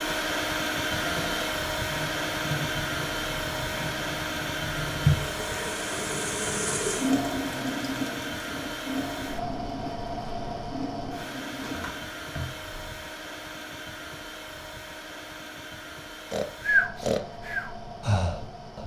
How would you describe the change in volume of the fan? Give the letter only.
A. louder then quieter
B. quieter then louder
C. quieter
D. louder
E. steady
C.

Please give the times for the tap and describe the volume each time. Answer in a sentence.
The tap can be heard from 1.8 to 12.2 s, getting louder then quieter.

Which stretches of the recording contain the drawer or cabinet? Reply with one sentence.
The drawer or cabinet can be heard from 0.9 to 1.6 s and from 11.6 to 13.1 s.